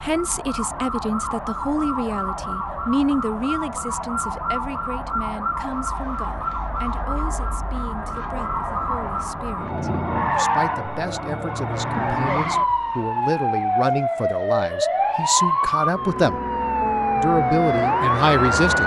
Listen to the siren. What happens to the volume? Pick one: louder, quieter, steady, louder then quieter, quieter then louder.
louder.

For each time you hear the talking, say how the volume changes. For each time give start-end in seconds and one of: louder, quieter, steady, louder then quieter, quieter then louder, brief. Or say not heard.
0.0-16.4 quieter then louder
17.1-18.8 brief.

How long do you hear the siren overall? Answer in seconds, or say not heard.
19 s.